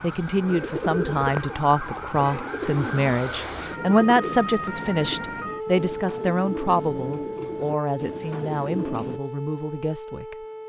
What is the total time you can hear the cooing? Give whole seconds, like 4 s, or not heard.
9 s.